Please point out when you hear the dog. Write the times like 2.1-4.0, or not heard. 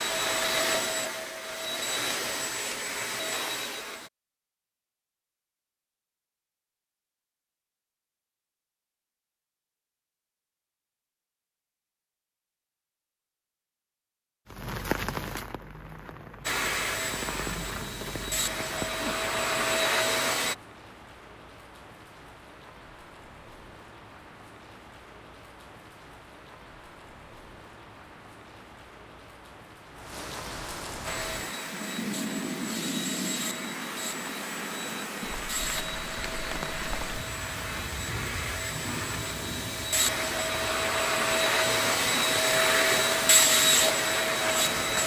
not heard.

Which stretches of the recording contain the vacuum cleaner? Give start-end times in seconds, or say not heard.
0.0-4.1, 16.4-20.6, 31.1-45.0.